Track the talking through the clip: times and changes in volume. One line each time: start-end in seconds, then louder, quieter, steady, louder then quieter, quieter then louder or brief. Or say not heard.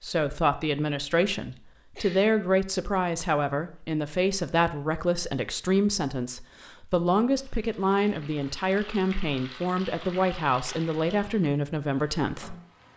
0.0-12.6 steady.